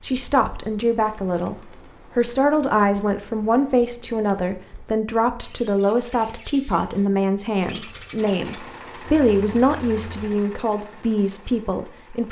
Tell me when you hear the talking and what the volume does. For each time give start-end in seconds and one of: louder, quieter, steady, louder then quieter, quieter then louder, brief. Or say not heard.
0.0-12.2 steady.